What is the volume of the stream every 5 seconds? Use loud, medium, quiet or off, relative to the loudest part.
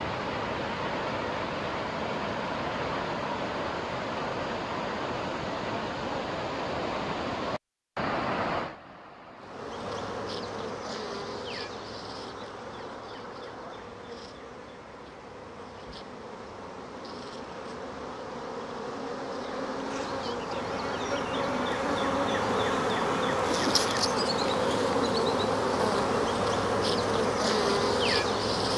loud, loud, quiet, quiet, off, off.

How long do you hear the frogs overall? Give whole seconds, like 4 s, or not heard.
not heard.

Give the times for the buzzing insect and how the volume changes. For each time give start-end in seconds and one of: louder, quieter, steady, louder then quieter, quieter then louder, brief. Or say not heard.
9.3-28.7 quieter then louder.